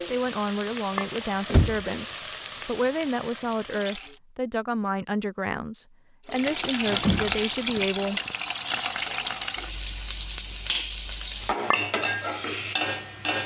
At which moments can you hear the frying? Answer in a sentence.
You can hear the frying from 0.0 to 4.2 s and from 6.2 to 13.4 s.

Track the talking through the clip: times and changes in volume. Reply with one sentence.
The talking can be heard from 0.1 to 8.2 s, at a steady volume.